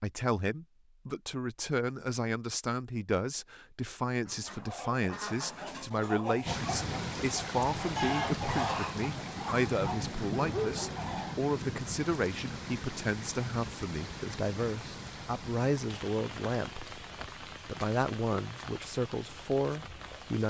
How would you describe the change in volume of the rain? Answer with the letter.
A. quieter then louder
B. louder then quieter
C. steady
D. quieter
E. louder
D.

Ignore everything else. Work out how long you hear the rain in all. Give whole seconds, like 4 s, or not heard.
14 s.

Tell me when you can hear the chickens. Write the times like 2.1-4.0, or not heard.
4.2-11.3.